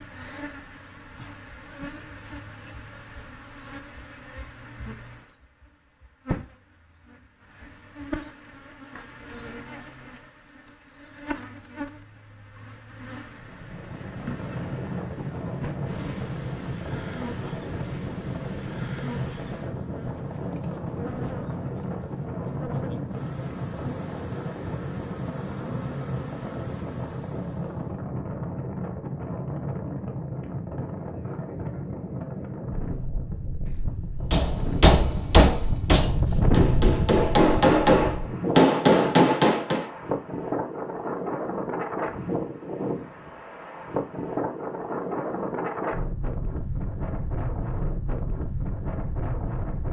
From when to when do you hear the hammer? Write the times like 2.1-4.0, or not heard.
34.3-39.9.